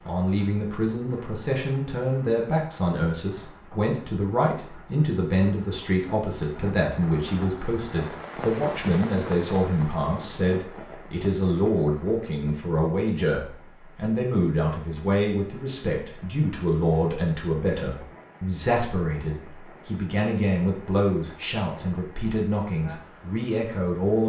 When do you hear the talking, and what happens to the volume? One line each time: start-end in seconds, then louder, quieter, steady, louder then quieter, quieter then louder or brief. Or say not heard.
0.1-24.2 steady.